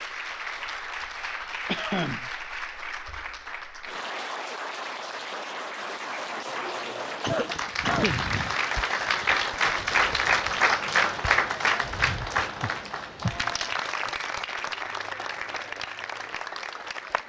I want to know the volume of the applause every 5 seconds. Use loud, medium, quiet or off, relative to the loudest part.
medium, loud, loud, medium.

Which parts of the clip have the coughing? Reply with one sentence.
The coughing can be heard from 1.6 to 2.3 s, from 7.1 to 8.6 s and from 13.2 to 14.1 s.